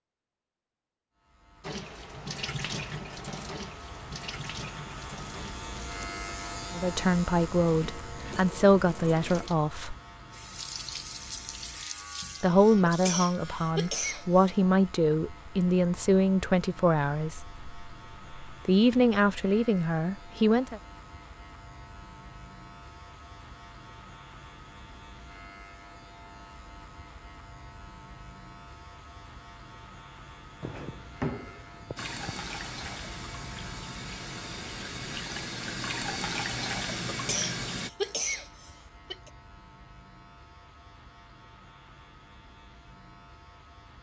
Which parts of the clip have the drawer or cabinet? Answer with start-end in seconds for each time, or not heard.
30.6-32.1.